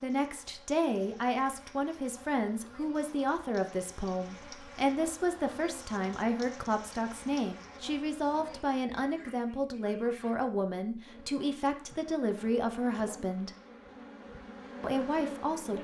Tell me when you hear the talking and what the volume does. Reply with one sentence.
The talking can be heard from 0.0 to 13.5 s, at a steady volume; and briefly from 14.8 to 15.8 s.